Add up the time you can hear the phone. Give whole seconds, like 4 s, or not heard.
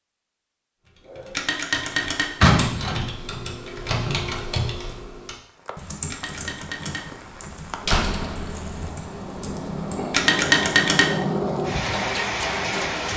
3 s.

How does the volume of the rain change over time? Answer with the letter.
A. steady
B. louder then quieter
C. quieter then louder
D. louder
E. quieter
D.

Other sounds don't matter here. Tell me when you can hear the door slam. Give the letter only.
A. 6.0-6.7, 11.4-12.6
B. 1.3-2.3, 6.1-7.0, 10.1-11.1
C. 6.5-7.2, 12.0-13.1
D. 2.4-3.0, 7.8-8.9
D.